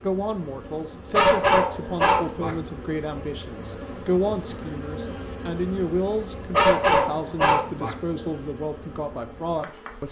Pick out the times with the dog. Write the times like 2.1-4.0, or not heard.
1.1-2.5, 6.5-8.0.